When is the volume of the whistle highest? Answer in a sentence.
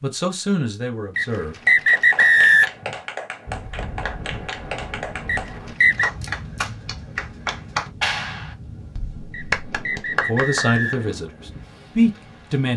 The volume of the whistle peaks at 2 seconds.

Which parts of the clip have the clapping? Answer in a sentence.
The clapping can be heard from 1.6 to 11.2 s.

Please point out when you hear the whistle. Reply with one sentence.
The whistle can be heard from 1.1 to 2.6 s, from 5.2 to 6.1 s and from 9.3 to 11.1 s.